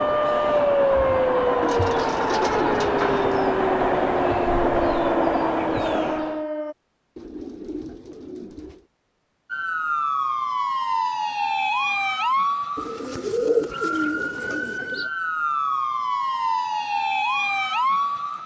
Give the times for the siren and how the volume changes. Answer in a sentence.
The siren can be heard from 0.0 to 6.8 s, getting quieter; and from 9.5 to 18.4 s, getting quieter then louder.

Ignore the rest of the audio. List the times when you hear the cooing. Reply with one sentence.
You can hear the cooing from 1.6 to 3.4 s, from 7.2 to 8.8 s and from 12.8 to 15.1 s.